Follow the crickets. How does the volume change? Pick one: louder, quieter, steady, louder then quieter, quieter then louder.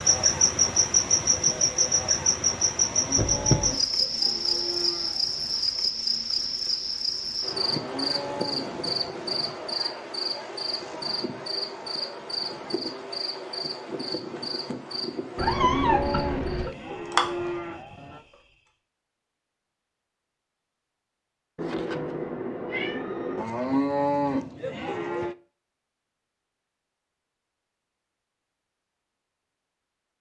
quieter.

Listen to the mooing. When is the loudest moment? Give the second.
24 s.